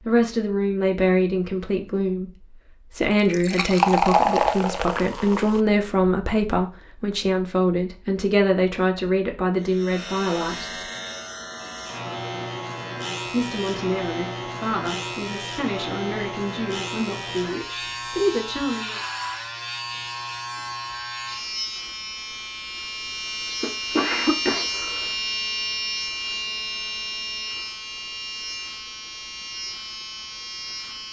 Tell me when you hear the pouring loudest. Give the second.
4 s.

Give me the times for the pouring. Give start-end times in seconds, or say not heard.
3.1-5.6.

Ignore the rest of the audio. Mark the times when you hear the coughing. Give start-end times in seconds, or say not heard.
23.6-25.1.